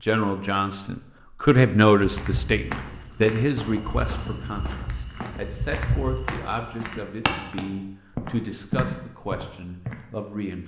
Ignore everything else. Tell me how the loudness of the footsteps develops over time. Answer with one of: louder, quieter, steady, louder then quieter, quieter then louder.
louder.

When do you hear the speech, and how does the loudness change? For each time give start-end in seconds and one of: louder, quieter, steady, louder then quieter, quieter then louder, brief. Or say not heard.
0.0-10.6 quieter.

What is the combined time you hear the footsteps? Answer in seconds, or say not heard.
8 s.